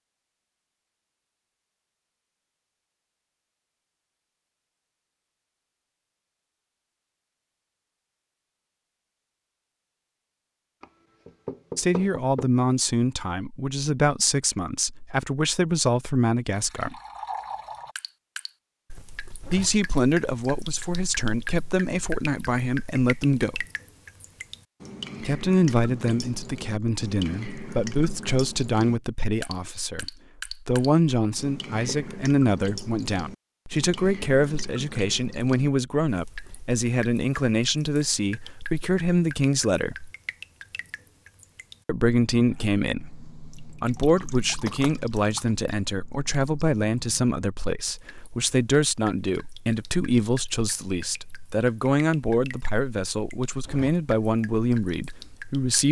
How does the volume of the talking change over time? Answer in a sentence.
The volume of the talking stays about the same.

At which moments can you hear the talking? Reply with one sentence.
The talking can be heard from 11.8 to 16.9 s, from 19.4 to 23.6 s, from 25.2 to 40.1 s and from 41.9 to 55.8 s.